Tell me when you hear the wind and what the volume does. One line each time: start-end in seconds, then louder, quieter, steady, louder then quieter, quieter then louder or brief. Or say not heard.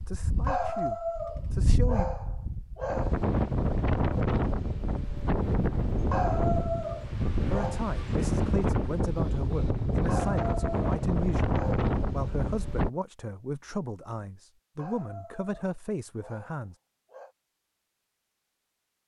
0.0-12.9 louder.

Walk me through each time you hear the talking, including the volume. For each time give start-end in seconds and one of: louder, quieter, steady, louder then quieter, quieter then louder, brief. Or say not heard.
0.0-2.0 brief
7.5-16.8 steady.